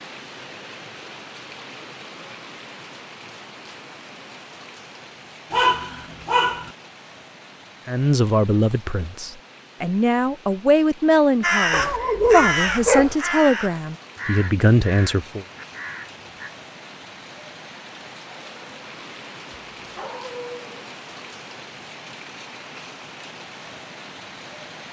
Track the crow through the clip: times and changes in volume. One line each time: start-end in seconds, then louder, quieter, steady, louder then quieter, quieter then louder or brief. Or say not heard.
11.4-16.5 quieter.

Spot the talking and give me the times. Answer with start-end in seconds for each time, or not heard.
7.8-15.4.